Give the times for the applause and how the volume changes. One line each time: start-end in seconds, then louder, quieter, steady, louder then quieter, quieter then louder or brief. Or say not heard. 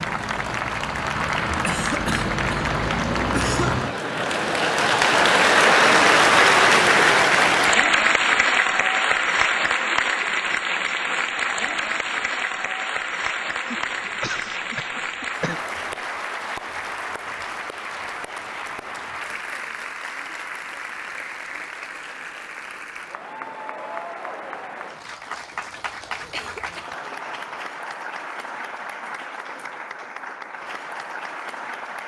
0.0-32.0 quieter.